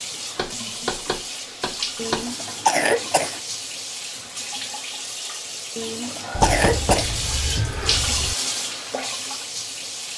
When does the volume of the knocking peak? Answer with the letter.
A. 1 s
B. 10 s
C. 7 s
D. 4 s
C.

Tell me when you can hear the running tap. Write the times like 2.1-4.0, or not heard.
0.0-10.1.